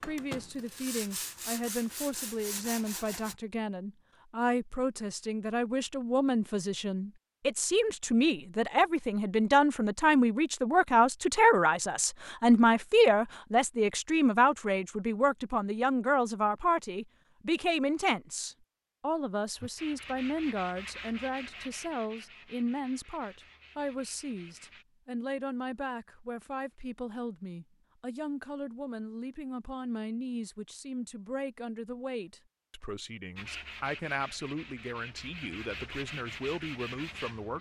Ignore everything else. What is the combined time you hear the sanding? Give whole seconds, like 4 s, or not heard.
13 s.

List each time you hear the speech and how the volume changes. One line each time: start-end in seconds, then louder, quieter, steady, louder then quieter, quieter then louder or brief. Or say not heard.
0.1-37.5 louder then quieter.